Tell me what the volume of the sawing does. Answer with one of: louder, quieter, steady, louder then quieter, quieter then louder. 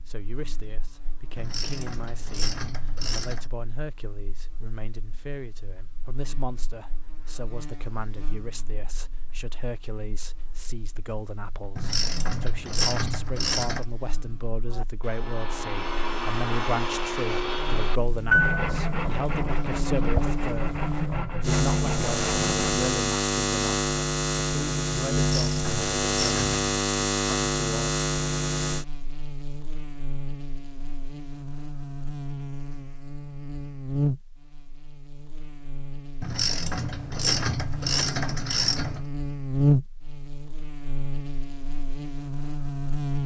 louder then quieter.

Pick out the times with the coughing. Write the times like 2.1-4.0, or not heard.
not heard.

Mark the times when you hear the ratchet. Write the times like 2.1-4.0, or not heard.
1.4-3.5, 11.8-13.8, 25.2-26.6, 36.2-39.0.